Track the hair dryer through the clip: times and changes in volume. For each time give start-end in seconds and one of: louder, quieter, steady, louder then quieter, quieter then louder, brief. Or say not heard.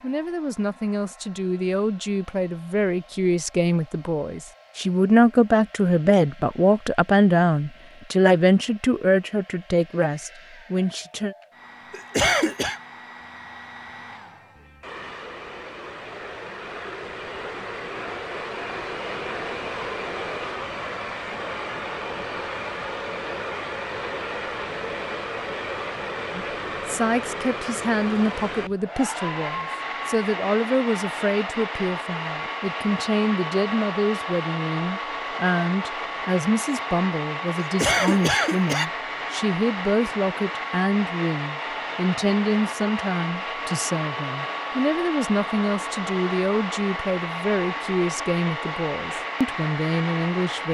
0.0-50.6 louder.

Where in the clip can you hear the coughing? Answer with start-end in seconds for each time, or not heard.
11.9-12.8, 37.6-38.9.